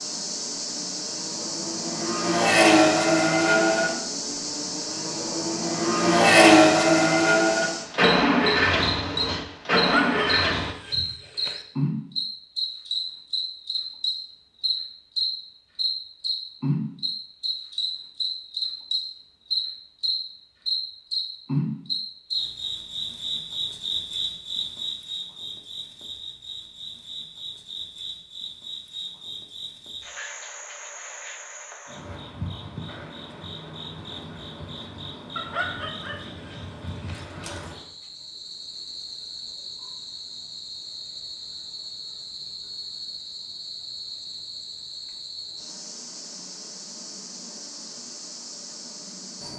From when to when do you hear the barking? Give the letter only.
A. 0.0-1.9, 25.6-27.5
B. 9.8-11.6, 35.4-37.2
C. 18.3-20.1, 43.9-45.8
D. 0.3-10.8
B.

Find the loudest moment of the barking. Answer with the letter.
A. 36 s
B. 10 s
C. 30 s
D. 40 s
B.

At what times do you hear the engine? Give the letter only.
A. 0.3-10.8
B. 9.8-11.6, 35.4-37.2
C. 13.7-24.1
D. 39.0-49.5
A.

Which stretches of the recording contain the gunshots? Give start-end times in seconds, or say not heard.
not heard.